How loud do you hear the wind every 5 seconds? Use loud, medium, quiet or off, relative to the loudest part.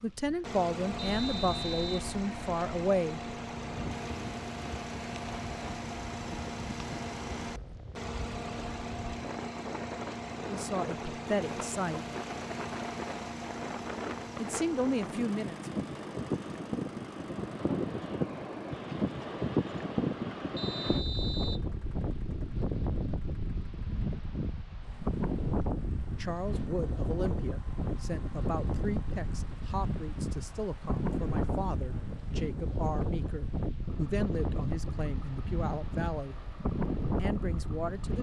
medium, medium, medium, loud, loud, loud, loud, loud.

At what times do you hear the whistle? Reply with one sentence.
The whistle can be heard from 0.9 to 1.9 s and from 20.6 to 21.6 s.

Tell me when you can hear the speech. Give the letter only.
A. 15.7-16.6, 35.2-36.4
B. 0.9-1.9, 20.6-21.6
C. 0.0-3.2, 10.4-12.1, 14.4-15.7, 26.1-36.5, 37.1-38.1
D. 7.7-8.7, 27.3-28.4
C.